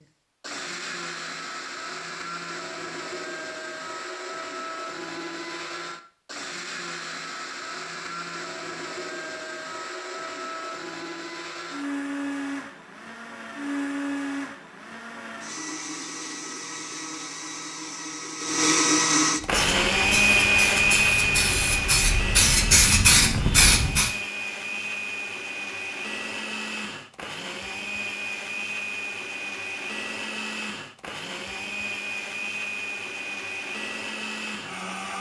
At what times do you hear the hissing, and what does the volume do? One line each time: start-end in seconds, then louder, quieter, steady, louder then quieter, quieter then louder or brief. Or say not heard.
19.4-24.1 louder.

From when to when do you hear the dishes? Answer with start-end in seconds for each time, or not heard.
not heard.